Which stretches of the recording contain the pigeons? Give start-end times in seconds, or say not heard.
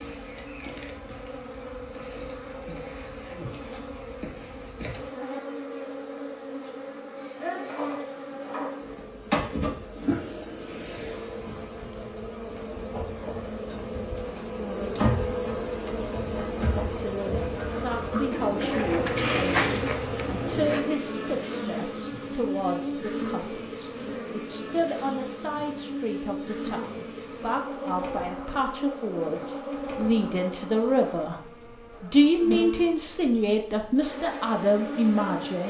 18.3-20.9.